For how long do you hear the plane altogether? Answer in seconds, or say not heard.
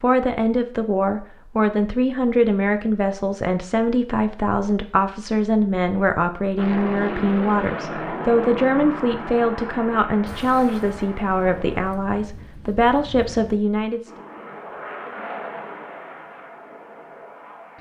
9 s.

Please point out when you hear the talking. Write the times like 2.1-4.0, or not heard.
0.0-14.1.